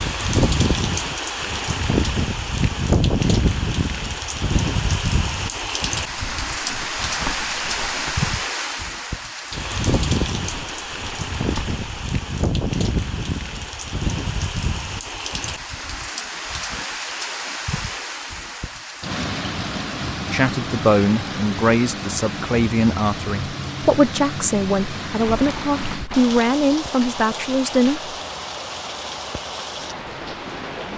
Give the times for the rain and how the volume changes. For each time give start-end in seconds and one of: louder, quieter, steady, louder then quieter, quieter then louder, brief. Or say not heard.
0.0-30.9 quieter.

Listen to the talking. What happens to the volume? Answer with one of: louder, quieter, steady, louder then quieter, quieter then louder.
steady.